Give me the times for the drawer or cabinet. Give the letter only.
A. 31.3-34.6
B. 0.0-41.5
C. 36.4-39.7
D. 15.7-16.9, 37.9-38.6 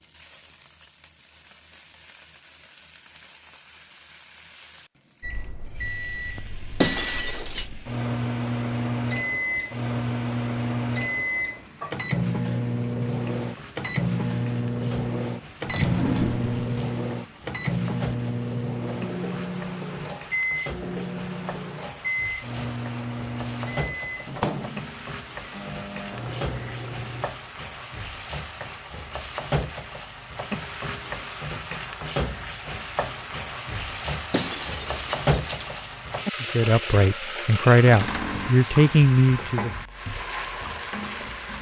D.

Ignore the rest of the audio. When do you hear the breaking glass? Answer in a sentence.
The breaking glass can be heard from 6.8 to 7.7 s and from 34.3 to 36.0 s.